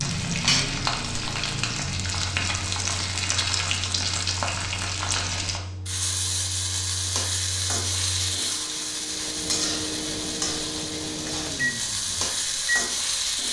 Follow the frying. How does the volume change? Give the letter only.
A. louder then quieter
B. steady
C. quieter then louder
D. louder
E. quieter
B.